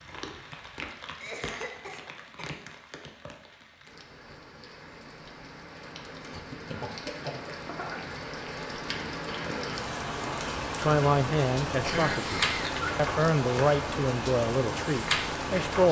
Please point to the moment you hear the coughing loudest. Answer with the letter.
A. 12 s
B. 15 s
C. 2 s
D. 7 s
A.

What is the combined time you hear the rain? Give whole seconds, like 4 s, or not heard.
16 s.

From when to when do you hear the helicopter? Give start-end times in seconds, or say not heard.
not heard.